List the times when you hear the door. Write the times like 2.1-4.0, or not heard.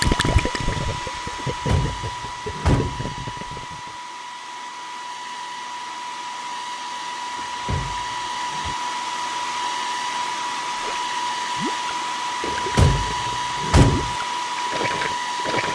1.4-3.0, 7.3-8.8, 12.4-14.2.